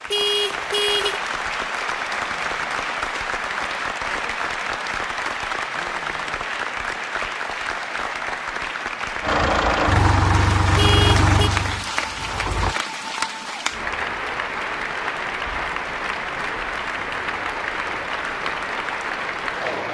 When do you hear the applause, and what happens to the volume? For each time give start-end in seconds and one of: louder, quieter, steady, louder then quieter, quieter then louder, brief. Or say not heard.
0.0-19.8 steady.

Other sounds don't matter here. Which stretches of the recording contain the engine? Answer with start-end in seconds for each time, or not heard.
9.2-12.8.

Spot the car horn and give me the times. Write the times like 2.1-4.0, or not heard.
0.1-1.2, 10.8-11.5.